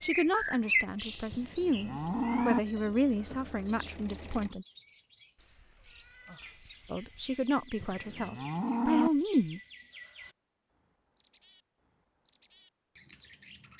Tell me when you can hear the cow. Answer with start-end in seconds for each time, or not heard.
1.3-2.6, 7.8-9.1.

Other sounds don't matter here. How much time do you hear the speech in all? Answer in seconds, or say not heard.
7 s.